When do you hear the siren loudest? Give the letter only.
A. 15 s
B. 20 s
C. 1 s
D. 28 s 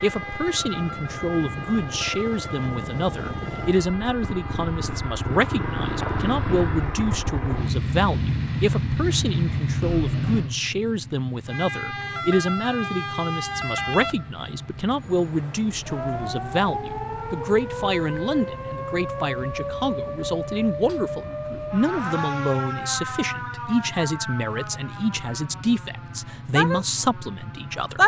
D.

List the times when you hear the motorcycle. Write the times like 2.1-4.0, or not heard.
0.0-28.0.